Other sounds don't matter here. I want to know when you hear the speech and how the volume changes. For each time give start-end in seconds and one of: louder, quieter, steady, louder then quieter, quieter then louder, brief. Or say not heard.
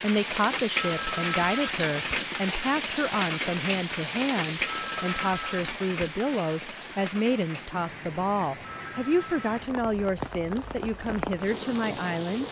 0.0-12.4 steady.